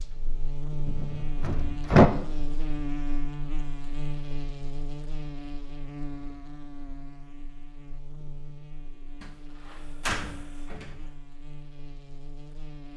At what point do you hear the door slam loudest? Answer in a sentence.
The loudest moment of the door slam is at 2 seconds.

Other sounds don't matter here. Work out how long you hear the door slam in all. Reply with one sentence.
The door slam can be heard for 3 seconds in total.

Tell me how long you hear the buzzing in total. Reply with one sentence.
You can hear the buzzing for 13 seconds altogether.